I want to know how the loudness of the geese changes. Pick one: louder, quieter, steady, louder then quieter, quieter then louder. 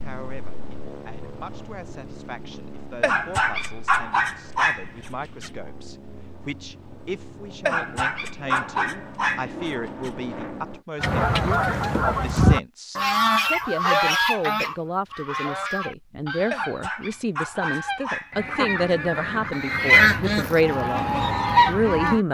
quieter then louder.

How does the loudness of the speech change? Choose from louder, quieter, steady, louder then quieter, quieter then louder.
louder.